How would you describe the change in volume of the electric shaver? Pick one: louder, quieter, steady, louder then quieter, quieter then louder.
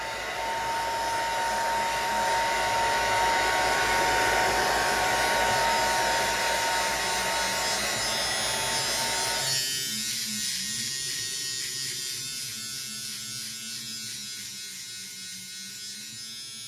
louder then quieter.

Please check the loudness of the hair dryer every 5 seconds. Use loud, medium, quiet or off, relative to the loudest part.
loud, loud, off, off.